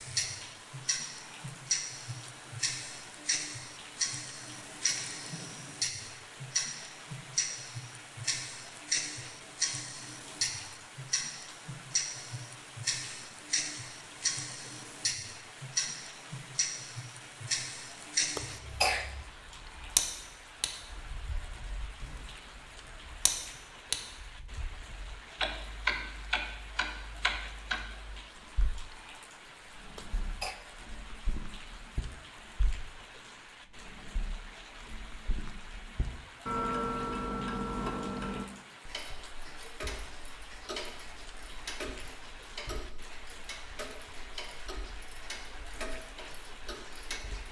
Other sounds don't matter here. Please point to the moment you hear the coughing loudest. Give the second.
19 s.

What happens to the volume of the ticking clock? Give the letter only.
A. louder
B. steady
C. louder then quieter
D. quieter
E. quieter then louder
D.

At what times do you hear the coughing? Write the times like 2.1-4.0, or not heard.
18.4-19.2, 29.9-30.6.